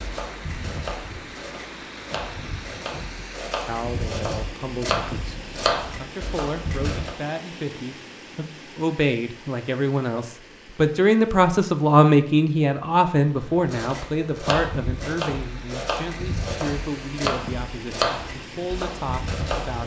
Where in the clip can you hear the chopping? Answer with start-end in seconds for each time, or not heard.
0.0-7.2, 13.5-19.8.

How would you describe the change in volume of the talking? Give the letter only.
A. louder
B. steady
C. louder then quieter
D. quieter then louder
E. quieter
C.